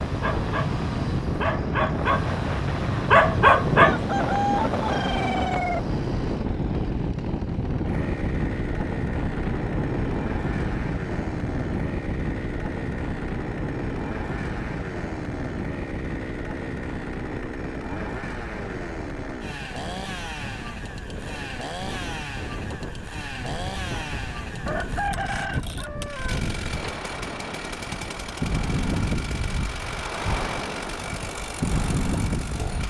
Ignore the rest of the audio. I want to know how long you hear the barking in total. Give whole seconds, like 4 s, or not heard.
4 s.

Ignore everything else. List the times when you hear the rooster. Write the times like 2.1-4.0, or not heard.
3.8-5.8, 24.6-26.4.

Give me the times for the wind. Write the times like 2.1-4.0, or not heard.
0.0-32.8.